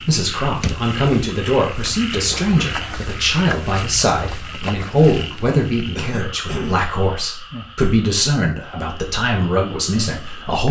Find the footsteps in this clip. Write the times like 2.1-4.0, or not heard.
not heard.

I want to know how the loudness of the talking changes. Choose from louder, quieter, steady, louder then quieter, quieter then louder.
steady.